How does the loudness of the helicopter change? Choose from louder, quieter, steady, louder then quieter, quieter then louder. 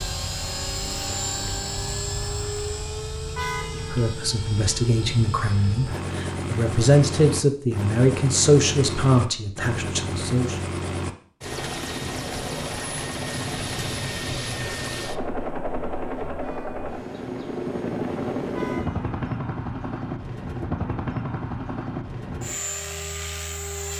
steady.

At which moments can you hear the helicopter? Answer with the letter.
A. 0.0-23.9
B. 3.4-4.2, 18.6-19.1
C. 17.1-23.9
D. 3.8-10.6
A.